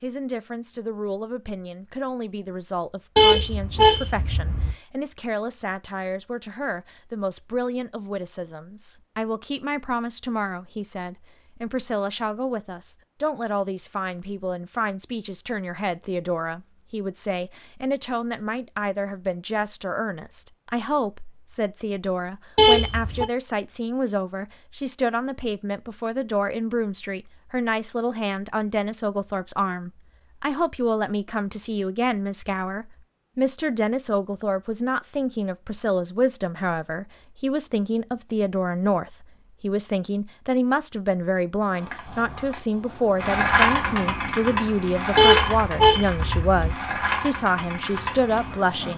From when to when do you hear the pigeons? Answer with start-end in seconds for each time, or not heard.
not heard.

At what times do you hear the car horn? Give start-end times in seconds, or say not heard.
3.1-4.8, 22.6-23.2, 45.1-46.8.